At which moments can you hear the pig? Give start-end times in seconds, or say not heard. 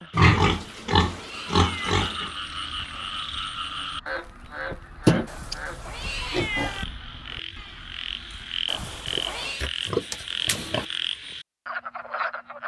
0.1-2.3, 5.0-5.5, 6.3-6.7, 9.1-10.8.